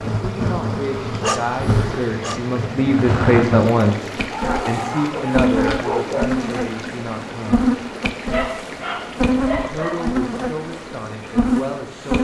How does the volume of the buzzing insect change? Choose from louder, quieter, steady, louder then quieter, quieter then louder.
steady.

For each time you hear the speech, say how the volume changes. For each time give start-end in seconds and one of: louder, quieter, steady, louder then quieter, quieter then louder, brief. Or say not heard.
0.1-7.7 louder then quieter
9.7-12.1 brief.